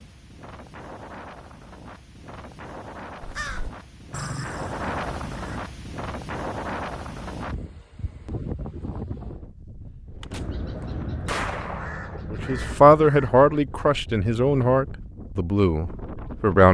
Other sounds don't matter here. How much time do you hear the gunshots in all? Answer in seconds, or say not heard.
2 s.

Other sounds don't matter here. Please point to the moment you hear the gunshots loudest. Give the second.
11 s.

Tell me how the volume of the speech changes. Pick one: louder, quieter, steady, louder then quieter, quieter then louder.
quieter then louder.